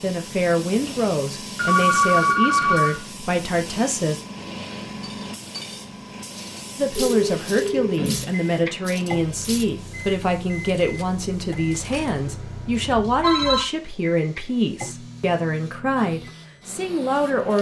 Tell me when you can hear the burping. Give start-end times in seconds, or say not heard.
not heard.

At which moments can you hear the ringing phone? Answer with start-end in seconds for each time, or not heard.
1.6-3.0, 7.0-8.3, 12.8-13.7.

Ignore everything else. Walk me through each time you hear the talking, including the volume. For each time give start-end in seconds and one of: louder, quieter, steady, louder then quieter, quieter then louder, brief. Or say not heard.
0.0-4.2 steady
6.8-17.5 steady.